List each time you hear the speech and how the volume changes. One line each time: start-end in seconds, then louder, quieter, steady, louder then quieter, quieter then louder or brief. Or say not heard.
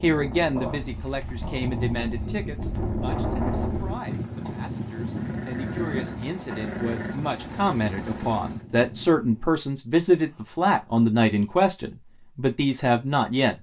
0.0-13.5 quieter then louder.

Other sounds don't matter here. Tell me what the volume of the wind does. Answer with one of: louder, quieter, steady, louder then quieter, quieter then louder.
louder then quieter.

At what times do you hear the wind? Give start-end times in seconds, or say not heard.
0.0-9.5.